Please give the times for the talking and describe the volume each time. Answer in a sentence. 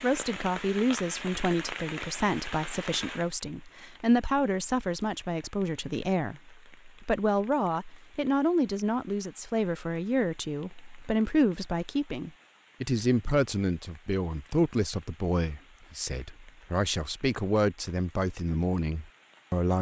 You can hear the talking from 0.0 to 19.7 s, at a steady volume.